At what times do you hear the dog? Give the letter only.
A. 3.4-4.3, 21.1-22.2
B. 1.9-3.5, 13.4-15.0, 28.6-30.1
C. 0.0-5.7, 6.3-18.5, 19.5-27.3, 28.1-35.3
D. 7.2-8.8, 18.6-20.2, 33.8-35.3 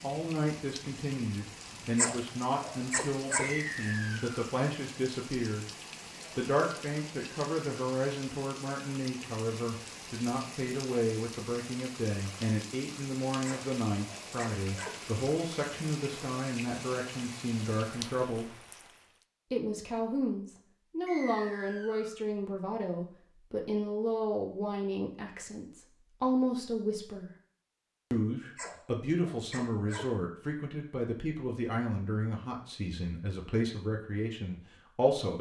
B.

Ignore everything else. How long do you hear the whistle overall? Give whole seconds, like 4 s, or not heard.
2 s.